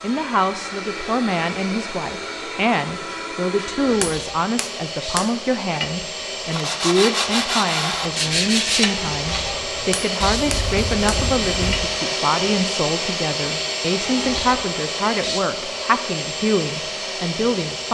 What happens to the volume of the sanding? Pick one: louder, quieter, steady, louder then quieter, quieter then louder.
quieter.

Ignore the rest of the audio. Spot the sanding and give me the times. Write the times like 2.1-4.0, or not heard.
6.5-12.0.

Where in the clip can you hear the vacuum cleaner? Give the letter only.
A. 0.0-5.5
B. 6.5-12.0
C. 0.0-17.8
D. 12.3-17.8
C.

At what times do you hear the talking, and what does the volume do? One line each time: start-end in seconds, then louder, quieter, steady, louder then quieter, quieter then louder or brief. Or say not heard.
0.0-17.8 steady.